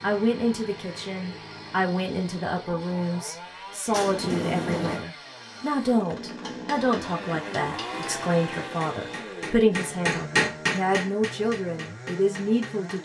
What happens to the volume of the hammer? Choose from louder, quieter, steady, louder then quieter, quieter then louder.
louder then quieter.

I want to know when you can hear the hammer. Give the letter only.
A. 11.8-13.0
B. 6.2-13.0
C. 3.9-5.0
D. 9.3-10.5
B.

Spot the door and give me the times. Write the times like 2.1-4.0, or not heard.
3.9-5.0.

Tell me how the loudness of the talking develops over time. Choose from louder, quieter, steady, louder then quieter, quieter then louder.
steady.